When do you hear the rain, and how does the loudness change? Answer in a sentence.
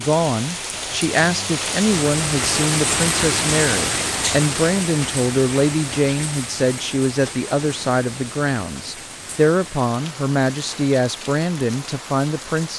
The rain can be heard from 0.0 to 12.7 s, getting quieter.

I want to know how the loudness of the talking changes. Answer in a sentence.
The loudness of the talking stays about the same.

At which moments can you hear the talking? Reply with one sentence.
The talking can be heard from 0.0 to 12.7 s.